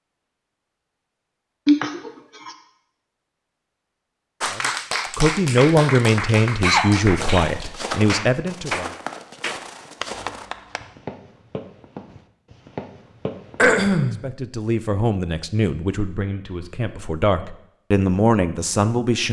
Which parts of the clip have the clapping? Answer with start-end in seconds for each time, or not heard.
4.4-10.9.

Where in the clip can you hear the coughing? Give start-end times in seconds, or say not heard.
1.6-2.5, 6.6-8.0, 13.6-14.2.